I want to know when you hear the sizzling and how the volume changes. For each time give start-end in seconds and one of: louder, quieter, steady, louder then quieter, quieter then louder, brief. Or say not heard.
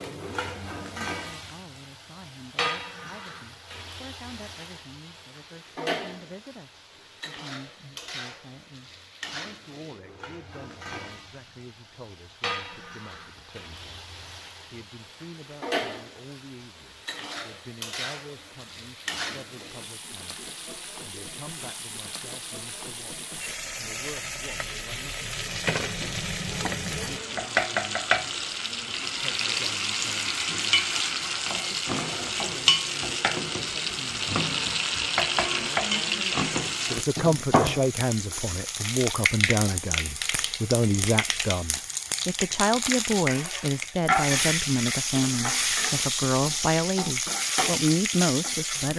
0.0-48.9 louder.